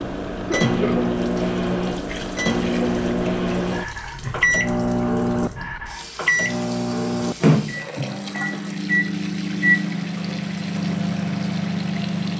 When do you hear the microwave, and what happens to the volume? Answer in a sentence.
The microwave can be heard from 0.0 to 12.3 s, at a steady volume.